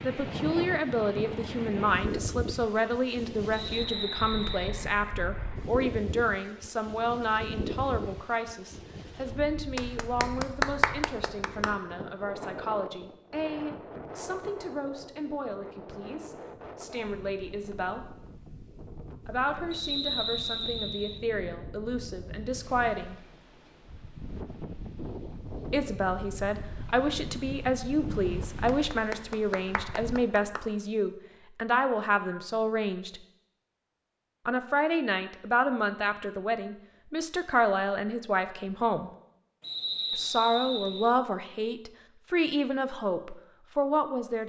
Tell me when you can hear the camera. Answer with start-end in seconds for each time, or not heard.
not heard.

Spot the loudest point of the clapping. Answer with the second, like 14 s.
11 s.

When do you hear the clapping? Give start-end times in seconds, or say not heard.
9.8-11.8, 28.7-30.7.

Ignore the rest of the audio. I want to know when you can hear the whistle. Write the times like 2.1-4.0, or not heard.
3.5-4.8, 19.7-21.2, 39.6-41.1.